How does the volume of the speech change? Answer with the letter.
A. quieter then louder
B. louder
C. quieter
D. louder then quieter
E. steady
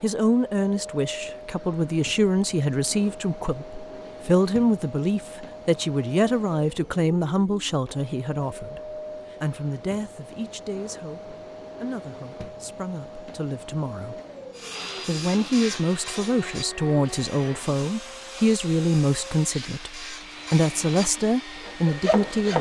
A.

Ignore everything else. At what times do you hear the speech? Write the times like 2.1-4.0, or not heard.
0.0-14.2, 15.1-22.5.